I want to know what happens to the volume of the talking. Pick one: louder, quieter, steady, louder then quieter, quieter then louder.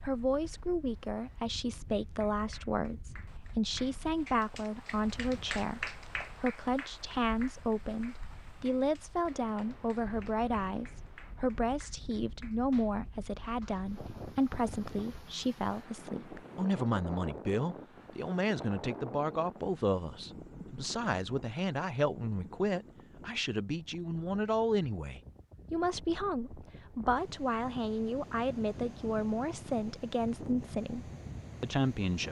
steady.